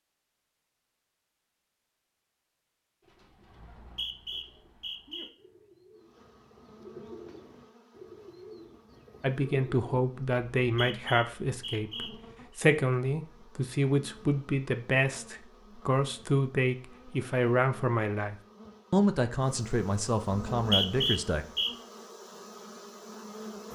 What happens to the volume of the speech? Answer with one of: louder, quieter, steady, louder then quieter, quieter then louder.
steady.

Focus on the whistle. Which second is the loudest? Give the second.
21 s.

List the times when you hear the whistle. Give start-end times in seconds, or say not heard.
3.5-5.3, 10.6-12.6, 20.6-21.7.